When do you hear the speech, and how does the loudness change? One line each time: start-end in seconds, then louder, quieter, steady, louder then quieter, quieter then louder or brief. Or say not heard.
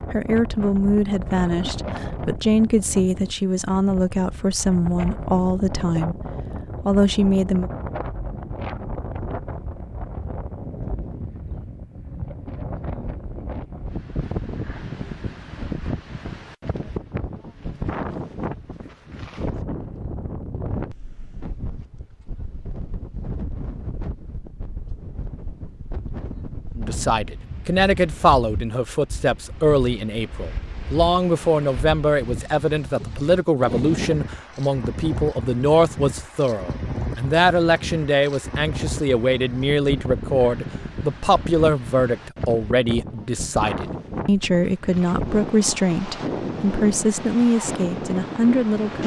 0.1-7.7 steady
26.8-49.0 steady.